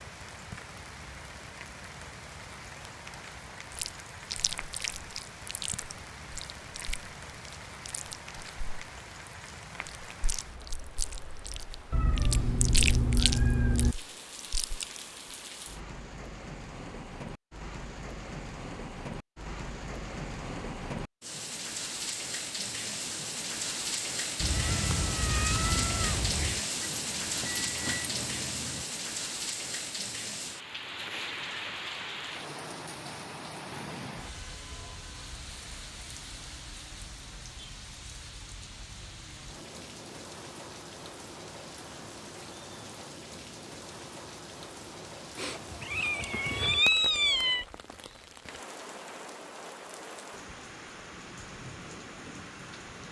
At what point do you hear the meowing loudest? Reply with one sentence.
The loudest moment of the meowing is at 47 seconds.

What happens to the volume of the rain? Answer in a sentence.
The loudness of the rain goes up, then down.